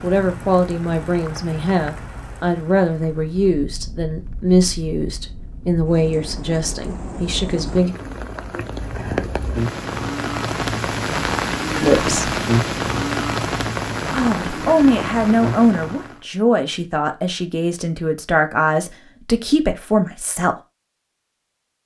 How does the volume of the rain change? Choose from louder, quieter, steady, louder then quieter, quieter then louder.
louder.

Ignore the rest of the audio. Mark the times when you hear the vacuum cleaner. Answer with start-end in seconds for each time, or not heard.
not heard.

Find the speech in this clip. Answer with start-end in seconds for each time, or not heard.
0.0-8.0, 11.8-12.3, 14.1-20.6.